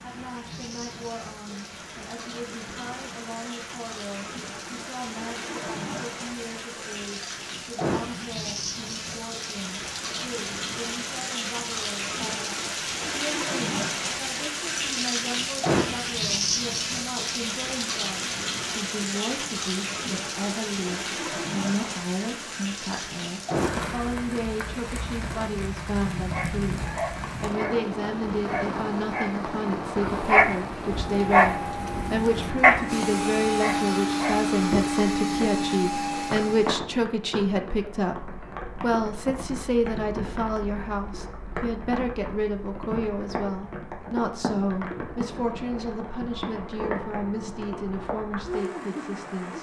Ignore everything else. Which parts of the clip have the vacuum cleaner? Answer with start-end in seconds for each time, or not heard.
31.0-36.8.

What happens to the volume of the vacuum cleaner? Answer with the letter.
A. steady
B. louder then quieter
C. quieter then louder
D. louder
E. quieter
D.